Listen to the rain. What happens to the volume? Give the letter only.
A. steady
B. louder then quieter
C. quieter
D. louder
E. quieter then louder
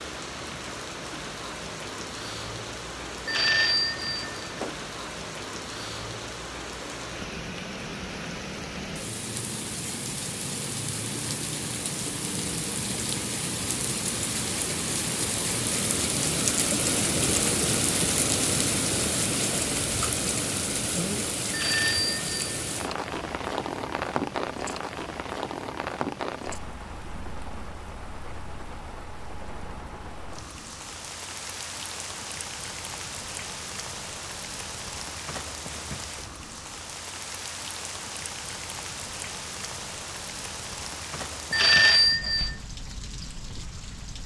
B.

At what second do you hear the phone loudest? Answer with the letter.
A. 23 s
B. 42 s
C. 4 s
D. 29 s
B.